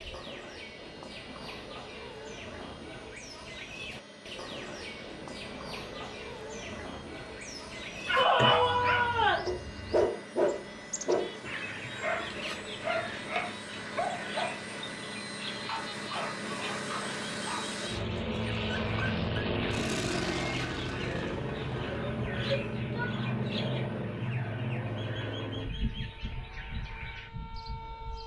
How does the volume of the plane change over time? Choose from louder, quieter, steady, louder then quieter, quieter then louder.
louder.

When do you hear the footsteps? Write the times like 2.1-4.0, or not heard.
not heard.